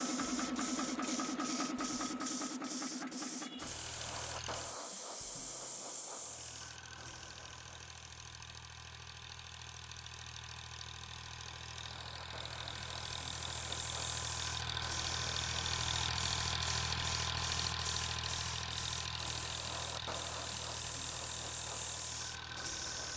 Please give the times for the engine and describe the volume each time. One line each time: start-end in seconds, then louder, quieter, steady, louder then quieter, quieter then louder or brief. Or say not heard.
0.0-4.8 quieter
6.2-23.1 louder then quieter.